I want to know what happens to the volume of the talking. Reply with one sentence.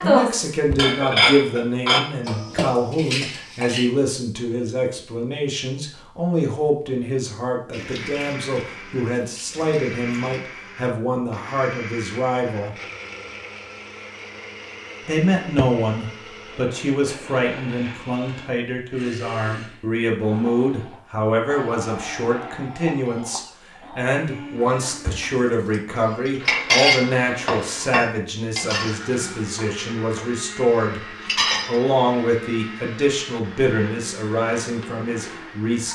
The loudness of the talking stays about the same.